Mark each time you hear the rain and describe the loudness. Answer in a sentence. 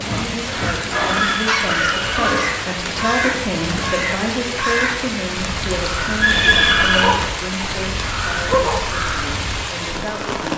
You can hear the rain from 0.0 to 10.5 s, at a steady volume.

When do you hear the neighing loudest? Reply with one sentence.
The loudest moment of the neighing is at 7 seconds.